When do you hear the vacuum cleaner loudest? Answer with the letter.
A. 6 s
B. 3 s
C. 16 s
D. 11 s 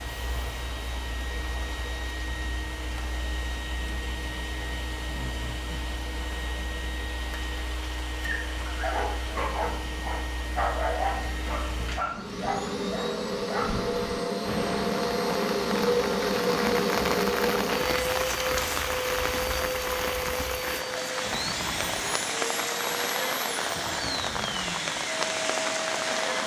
C.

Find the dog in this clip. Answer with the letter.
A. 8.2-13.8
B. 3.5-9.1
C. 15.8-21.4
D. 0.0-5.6
A.